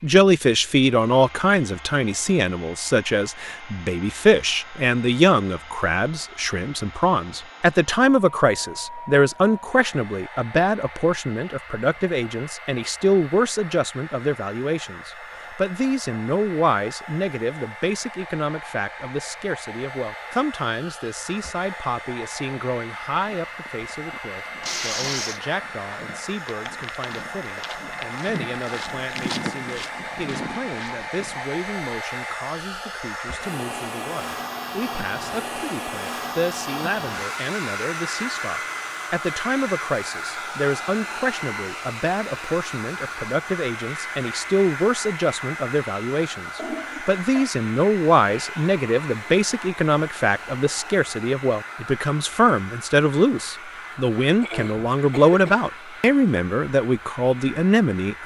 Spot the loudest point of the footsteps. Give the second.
29 s.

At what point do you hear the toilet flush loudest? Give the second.
25 s.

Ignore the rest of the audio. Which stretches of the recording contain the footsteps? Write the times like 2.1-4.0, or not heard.
23.2-31.4.